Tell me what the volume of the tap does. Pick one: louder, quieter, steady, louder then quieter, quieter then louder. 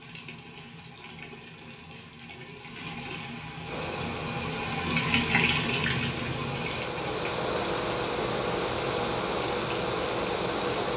louder then quieter.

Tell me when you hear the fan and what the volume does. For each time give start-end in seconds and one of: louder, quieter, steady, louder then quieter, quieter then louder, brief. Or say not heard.
3.6-10.9 louder.